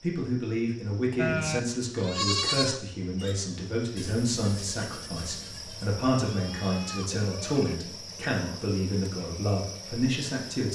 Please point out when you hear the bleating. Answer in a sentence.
The bleating can be heard from 1.1 to 7.8 s.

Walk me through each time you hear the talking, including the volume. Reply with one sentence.
The talking can be heard from 0.0 to 10.7 s, at a steady volume.